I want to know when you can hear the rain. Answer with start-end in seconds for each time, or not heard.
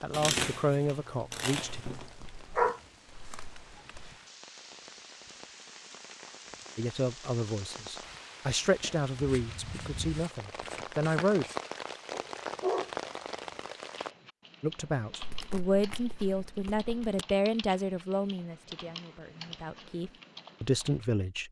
0.0-14.2.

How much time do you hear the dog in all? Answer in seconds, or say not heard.
4 s.